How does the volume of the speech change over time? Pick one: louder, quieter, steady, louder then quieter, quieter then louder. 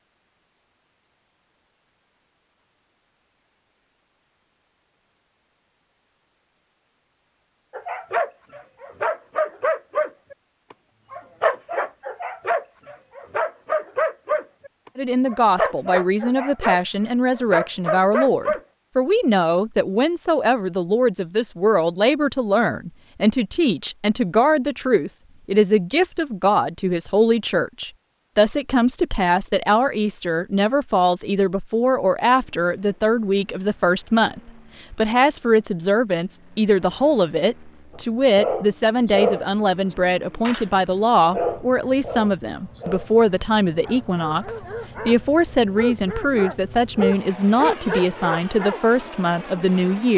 steady.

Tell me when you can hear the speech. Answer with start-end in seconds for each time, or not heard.
14.9-50.1.